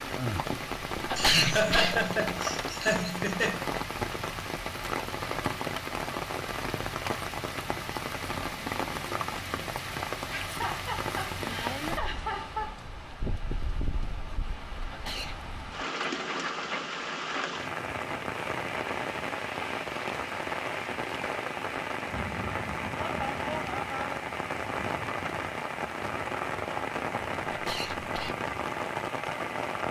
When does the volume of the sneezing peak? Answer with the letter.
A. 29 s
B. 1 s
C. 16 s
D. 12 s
B.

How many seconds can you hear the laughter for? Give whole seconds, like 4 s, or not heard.
6 s.